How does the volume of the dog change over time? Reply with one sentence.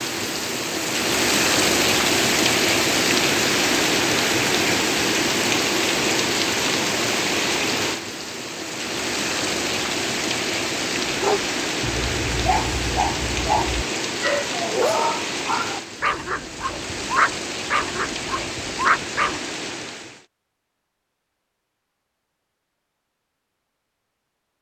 The loudness of the dog stays about the same.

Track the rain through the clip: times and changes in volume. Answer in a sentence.
You can hear the rain from 0.0 to 20.2 s, getting quieter.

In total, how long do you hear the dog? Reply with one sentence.
The dog can be heard for 8 seconds in total.